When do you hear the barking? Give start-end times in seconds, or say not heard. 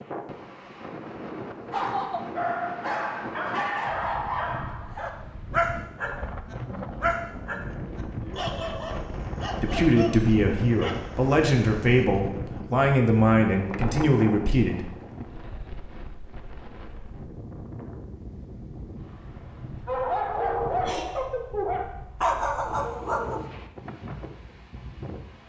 1.7-12.1, 19.9-23.5.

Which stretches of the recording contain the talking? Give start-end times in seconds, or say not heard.
9.6-14.9.